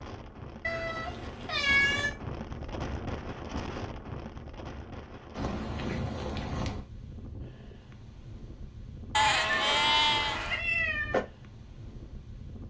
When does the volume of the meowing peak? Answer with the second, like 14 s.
2 s.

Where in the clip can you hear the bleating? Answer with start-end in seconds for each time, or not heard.
9.1-10.6.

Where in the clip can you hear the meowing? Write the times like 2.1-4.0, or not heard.
0.6-2.1, 5.3-6.8, 9.2-11.2.